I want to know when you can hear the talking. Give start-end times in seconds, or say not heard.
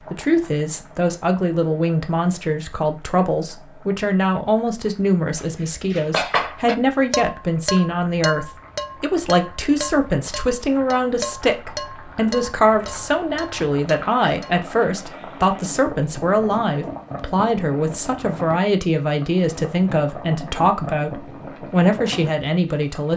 0.1-23.1.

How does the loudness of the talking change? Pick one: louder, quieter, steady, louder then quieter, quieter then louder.
steady.